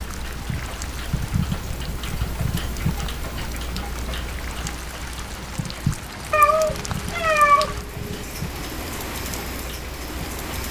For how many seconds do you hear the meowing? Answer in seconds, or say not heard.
2 s.